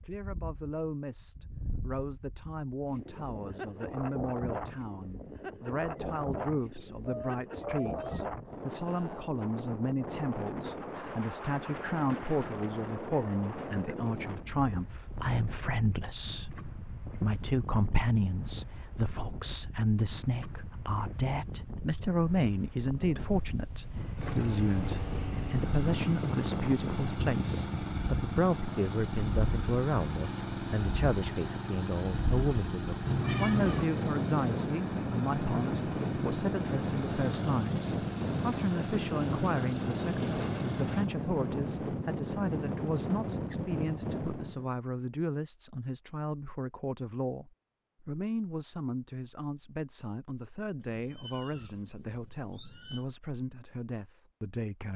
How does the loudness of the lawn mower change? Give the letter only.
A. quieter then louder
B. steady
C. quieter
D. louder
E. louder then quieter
B.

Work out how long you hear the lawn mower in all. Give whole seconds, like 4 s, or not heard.
17 s.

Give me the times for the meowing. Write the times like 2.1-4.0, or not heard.
7.0-8.2, 33.0-33.9, 50.8-53.0.